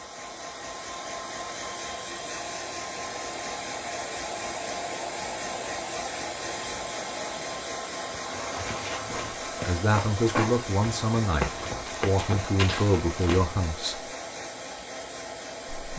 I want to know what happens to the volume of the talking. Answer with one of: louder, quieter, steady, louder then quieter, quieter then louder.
steady.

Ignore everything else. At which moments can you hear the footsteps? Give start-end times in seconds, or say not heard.
8.2-13.6.